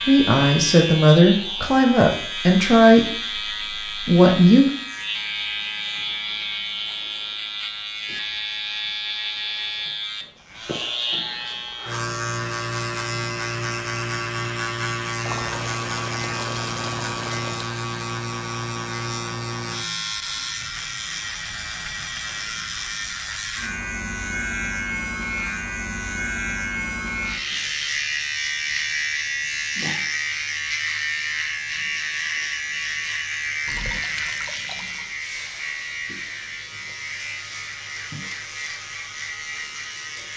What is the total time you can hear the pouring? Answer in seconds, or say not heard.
4 s.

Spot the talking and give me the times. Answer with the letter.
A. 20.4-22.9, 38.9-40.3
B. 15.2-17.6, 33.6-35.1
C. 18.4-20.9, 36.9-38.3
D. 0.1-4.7
D.